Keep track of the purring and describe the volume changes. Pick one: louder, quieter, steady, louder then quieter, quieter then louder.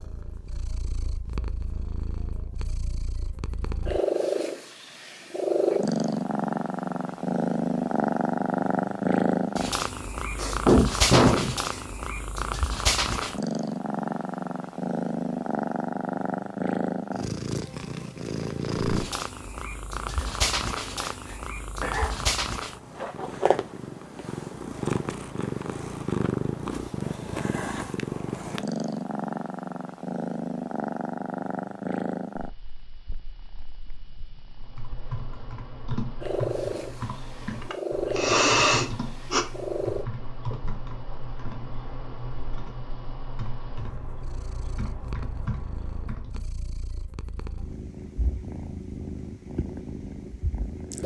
quieter.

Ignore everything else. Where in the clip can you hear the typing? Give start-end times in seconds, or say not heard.
34.5-46.5.